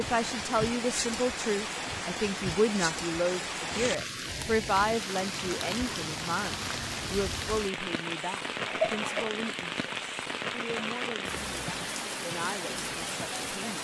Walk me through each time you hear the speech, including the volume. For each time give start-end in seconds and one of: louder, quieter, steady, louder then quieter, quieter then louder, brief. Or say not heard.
0.0-13.8 quieter.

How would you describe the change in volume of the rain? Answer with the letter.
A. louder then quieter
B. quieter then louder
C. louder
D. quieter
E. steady
E.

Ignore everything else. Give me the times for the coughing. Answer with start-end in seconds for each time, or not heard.
8.6-9.3.